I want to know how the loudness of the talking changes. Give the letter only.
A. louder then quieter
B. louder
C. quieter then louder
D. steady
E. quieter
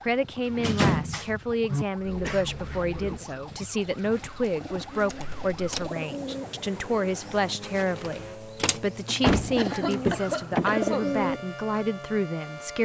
D.